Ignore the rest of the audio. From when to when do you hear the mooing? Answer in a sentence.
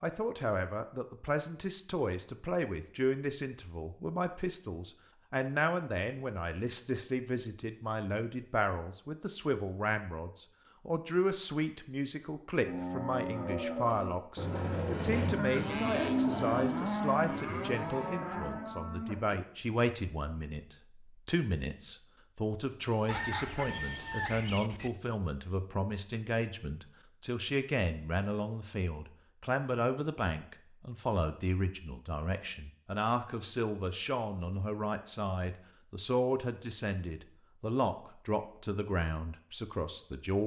You can hear the mooing from 12.7 to 19.4 s.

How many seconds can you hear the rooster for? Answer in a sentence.
The rooster can be heard for 2 seconds in total.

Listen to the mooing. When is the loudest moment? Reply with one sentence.
The loudest moment of the mooing is at 16 seconds.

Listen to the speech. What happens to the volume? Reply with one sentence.
The volume of the speech stays about the same.